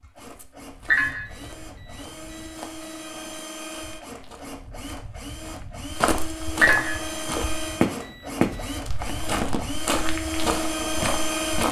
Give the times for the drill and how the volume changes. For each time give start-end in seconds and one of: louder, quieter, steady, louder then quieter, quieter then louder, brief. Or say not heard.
0.0-11.6 louder.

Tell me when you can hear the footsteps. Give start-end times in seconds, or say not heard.
0.0-11.6.